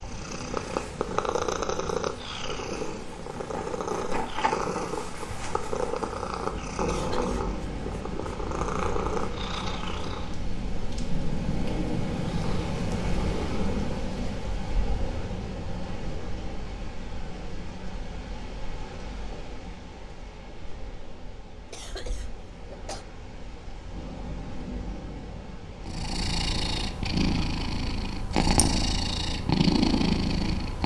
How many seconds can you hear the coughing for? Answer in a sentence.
The coughing can be heard for 2 seconds in total.